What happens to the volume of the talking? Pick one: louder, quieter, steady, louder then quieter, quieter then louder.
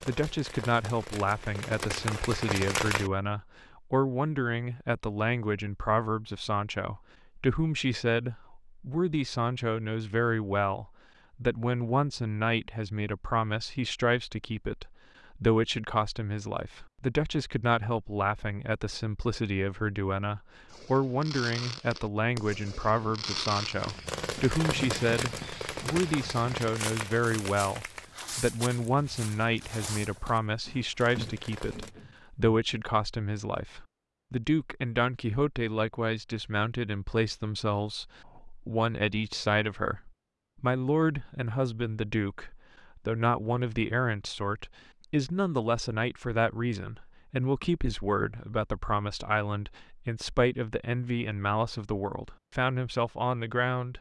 steady.